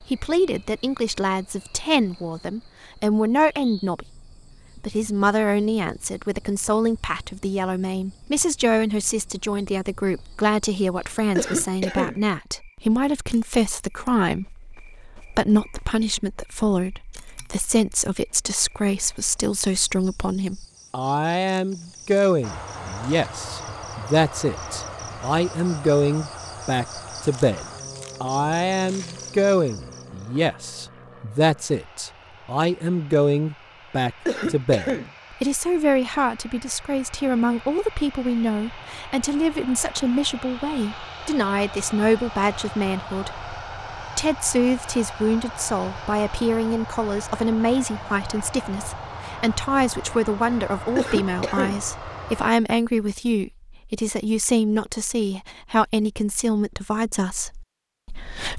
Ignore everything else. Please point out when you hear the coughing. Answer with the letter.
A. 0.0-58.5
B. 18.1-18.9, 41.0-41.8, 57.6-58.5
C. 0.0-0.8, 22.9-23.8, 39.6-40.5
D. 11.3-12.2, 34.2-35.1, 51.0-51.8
D.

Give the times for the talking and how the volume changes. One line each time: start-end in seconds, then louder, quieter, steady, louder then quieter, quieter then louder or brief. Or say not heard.
0.0-58.5 steady.